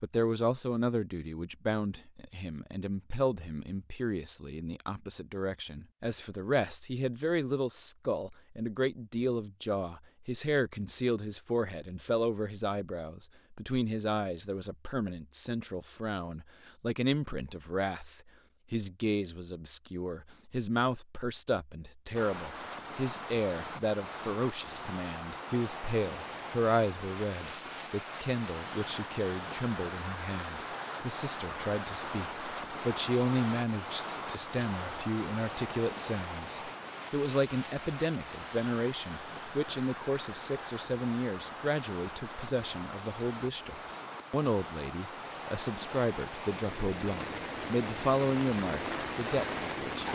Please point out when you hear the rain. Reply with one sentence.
The rain can be heard from 22.1 to 50.1 s.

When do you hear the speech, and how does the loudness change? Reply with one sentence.
You can hear the speech from 0.0 to 50.1 s, at a steady volume.